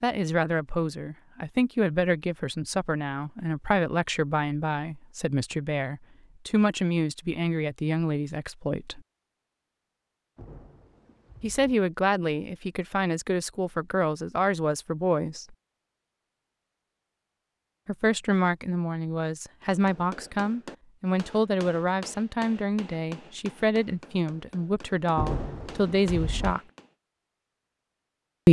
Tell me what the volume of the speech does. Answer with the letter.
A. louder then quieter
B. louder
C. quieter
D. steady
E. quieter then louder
D.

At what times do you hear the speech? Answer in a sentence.
The speech can be heard from 0.0 to 9.0 s, from 11.4 to 15.6 s and from 17.9 to 26.6 s.